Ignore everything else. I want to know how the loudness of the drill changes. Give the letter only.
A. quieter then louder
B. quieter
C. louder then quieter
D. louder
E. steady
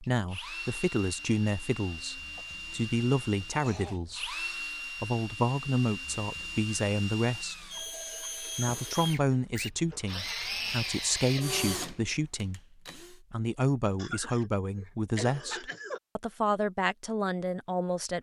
D.